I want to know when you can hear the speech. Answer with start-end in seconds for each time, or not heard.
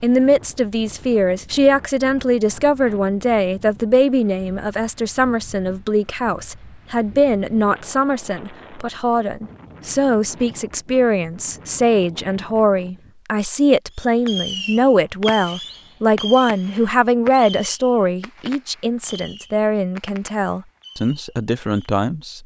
0.0-22.4.